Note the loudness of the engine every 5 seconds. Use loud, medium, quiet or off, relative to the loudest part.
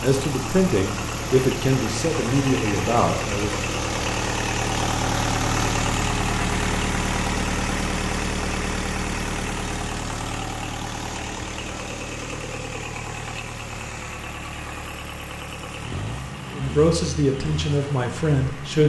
loud, loud, medium, medium.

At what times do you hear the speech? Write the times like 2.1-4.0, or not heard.
0.0-3.5, 16.6-18.8.